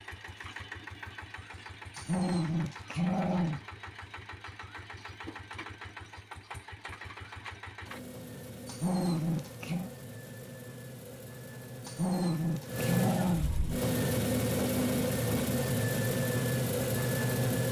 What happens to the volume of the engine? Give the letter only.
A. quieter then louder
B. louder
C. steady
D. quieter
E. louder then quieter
B.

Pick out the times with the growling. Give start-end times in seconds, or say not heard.
1.9-3.6, 8.7-9.9, 11.8-13.5.